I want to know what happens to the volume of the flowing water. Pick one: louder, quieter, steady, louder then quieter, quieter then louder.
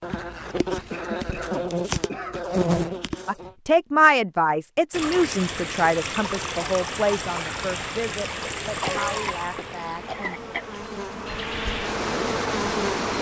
quieter then louder.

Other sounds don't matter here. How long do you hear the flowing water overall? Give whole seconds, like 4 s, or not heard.
8 s.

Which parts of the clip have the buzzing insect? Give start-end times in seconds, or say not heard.
0.0-3.5, 9.6-13.1.